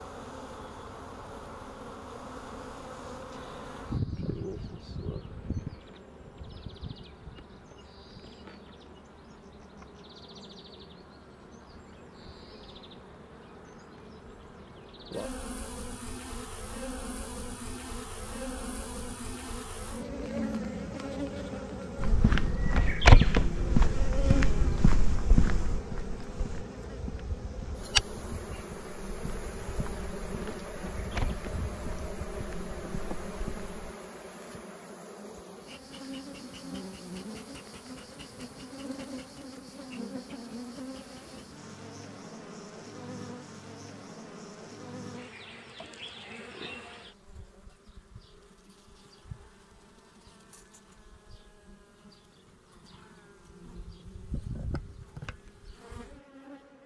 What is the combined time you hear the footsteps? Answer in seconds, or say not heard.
12 s.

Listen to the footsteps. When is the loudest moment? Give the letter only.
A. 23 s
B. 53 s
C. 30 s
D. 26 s
A.